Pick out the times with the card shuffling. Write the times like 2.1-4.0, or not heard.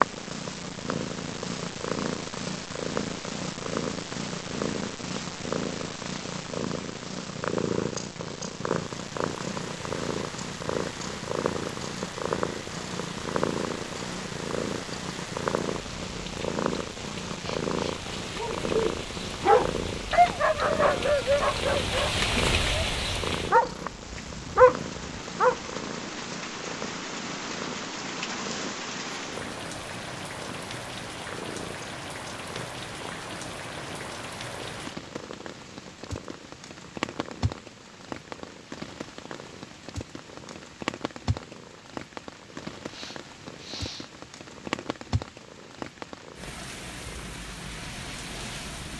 not heard.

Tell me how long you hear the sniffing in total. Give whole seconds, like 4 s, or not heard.
2 s.